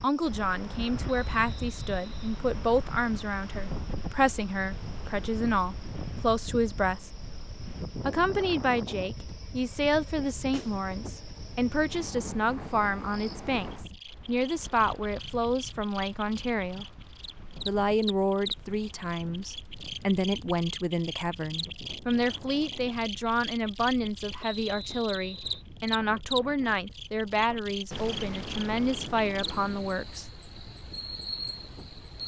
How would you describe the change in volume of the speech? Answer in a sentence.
The loudness of the speech stays about the same.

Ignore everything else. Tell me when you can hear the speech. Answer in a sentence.
The speech can be heard from 0.0 to 7.1 s, from 8.1 to 16.9 s and from 17.6 to 30.2 s.